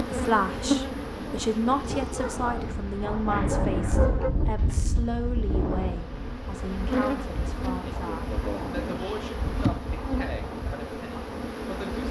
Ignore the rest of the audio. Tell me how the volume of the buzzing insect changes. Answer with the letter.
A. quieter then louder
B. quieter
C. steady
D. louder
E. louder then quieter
A.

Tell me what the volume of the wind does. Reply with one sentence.
The volume of the wind goes up, then down.